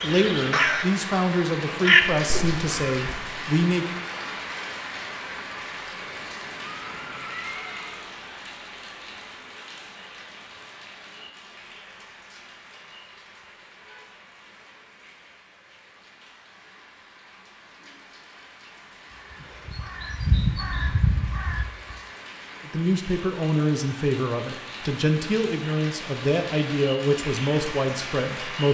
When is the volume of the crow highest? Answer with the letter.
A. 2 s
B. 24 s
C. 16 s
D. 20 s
A.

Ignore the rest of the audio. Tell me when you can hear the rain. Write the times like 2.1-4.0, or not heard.
0.0-28.6.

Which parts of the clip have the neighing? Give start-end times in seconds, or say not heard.
6.0-8.1.